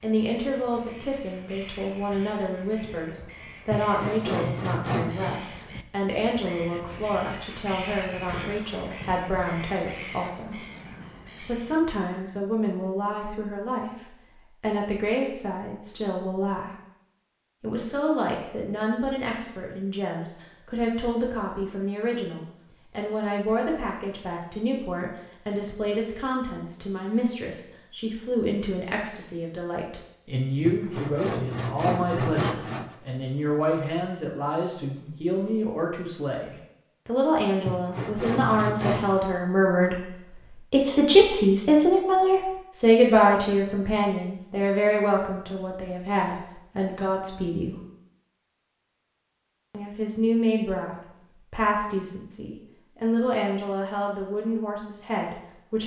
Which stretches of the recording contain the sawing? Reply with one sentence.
The sawing can be heard from 3.7 to 5.3 s, from 30.6 to 33.0 s and from 37.6 to 39.2 s.